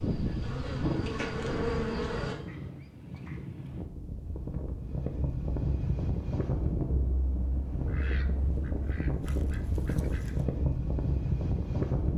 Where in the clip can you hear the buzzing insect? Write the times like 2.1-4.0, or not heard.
0.0-2.4.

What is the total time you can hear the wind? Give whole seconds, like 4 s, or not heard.
12 s.